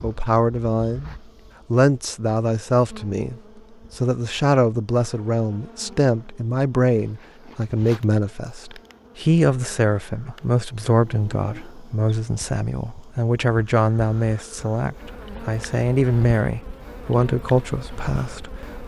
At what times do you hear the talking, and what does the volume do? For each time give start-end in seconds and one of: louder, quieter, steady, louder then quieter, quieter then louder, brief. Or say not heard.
0.0-1.1 brief
1.7-18.8 steady.